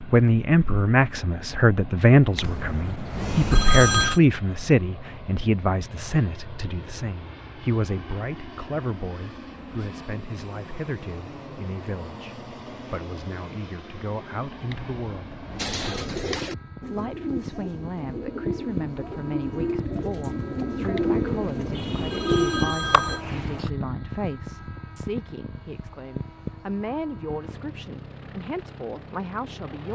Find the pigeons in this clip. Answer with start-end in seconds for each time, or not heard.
15.6-23.7.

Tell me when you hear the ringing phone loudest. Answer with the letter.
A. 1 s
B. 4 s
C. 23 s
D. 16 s
B.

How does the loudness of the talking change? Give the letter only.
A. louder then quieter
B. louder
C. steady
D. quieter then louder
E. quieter
E.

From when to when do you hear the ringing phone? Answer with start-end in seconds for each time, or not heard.
2.4-4.2, 14.7-16.1, 20.9-23.2.